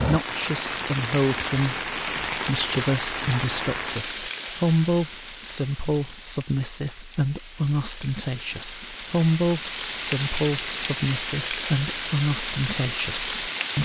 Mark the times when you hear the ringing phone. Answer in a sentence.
The ringing phone can't be heard in this clip.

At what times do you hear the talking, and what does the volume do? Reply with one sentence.
The talking can be heard from 0.1 to 13.7 s, at a steady volume.